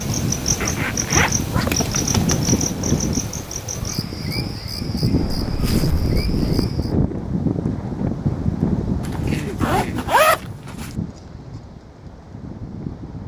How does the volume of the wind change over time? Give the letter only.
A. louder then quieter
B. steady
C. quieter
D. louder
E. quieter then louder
C.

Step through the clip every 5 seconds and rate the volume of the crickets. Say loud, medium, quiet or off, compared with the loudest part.
loud, medium, off.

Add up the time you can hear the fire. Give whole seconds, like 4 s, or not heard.
not heard.